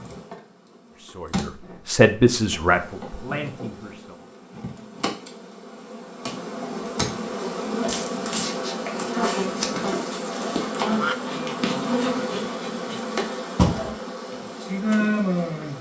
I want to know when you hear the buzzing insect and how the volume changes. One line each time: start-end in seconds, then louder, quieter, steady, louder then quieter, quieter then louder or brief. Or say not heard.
0.0-15.7 louder.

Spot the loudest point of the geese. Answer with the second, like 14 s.
11 s.